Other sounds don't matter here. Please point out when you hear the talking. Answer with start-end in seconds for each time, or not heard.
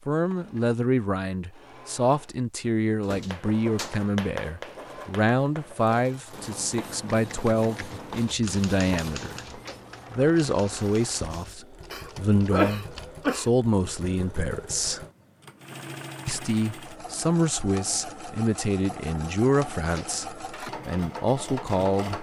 0.1-9.4, 10.1-15.1, 16.2-22.1.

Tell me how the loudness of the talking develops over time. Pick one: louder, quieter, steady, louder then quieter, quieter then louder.
steady.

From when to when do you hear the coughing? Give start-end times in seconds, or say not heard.
11.9-13.5.